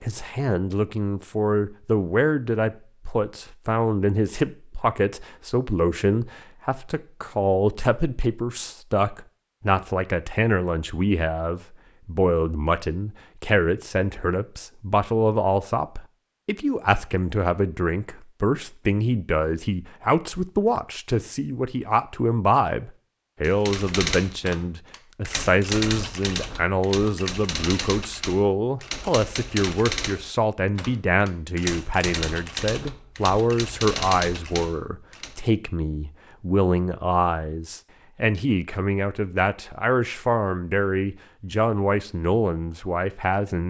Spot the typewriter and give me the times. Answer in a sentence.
You can hear the typewriter from 23.4 to 35.4 s.